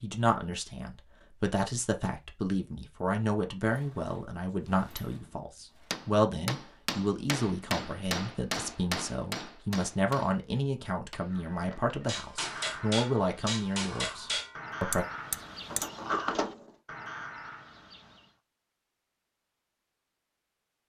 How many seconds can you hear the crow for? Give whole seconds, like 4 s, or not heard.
7 s.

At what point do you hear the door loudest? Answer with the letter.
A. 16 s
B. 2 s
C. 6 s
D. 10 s
A.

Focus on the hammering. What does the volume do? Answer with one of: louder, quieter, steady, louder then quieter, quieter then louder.
quieter then louder.